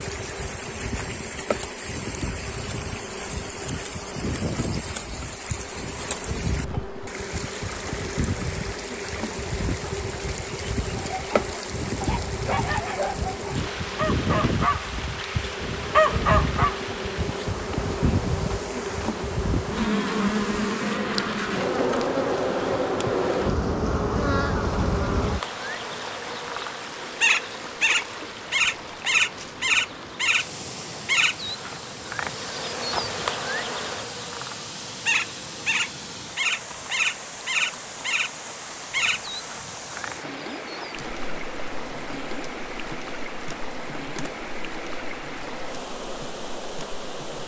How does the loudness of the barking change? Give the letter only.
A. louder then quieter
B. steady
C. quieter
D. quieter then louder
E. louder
E.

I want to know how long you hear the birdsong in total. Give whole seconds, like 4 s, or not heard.
not heard.